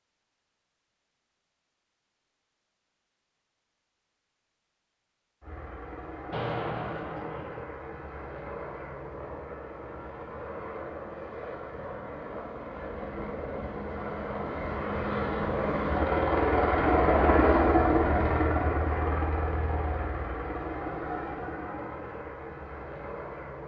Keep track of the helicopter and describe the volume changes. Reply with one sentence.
The loudness of the helicopter goes up, then down.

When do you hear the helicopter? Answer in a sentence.
You can hear the helicopter from 5.4 to 23.6 s.